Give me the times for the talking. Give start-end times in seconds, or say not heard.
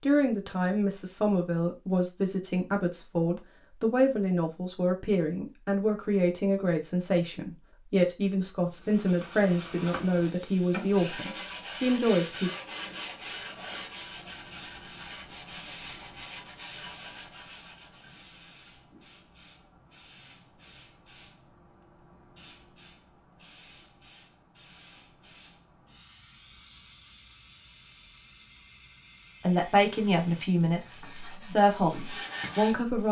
0.0-12.5, 29.4-33.0.